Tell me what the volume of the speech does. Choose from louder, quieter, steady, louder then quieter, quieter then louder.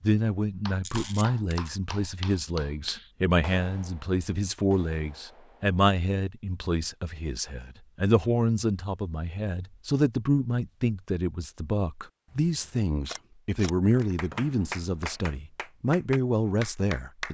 steady.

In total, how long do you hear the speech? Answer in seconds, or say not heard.
17 s.